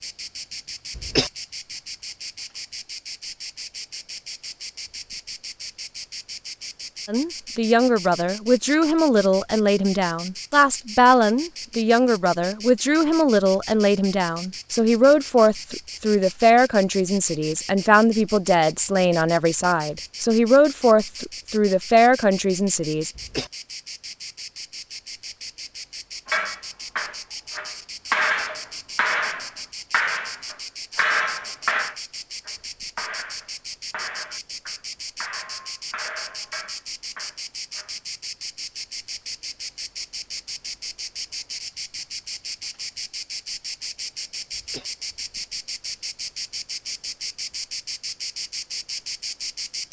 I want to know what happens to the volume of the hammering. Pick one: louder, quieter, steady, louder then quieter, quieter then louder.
quieter.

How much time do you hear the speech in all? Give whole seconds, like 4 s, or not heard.
16 s.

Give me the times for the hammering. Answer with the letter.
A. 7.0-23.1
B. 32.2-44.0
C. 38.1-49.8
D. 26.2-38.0
D.